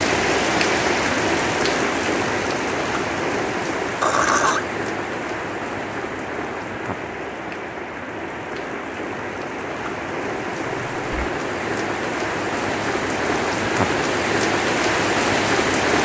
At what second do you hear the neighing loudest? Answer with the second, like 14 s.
4 s.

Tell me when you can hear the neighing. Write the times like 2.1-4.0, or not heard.
4.0-4.7, 10.7-11.2.